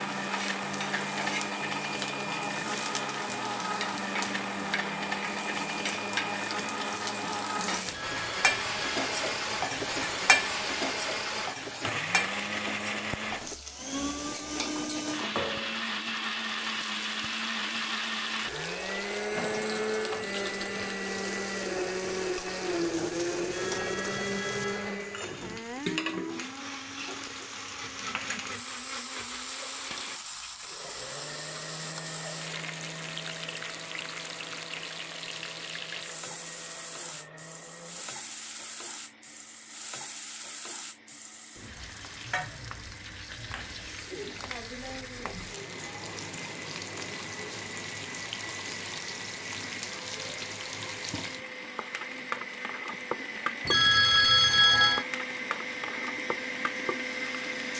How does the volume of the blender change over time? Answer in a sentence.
The loudness of the blender goes down, then up.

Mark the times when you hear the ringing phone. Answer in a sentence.
You can hear the ringing phone from 7.8 to 8.9 s, from 23.4 to 24.9 s and from 53.6 to 55.0 s.